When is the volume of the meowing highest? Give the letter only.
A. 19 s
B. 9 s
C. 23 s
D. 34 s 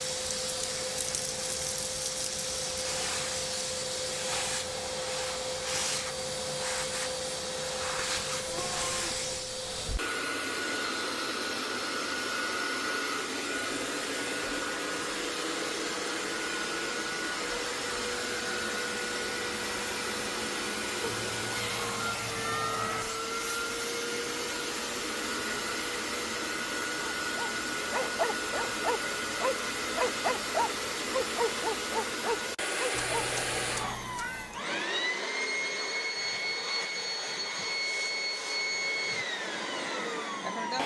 C.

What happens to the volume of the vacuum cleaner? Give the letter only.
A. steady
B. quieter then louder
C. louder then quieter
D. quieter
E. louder
A.